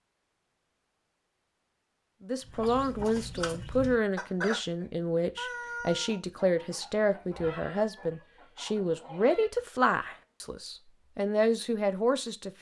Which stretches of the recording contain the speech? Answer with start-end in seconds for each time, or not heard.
2.2-12.5.